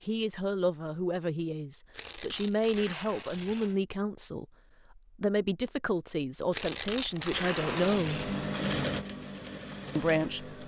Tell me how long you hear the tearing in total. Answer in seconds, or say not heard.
4 s.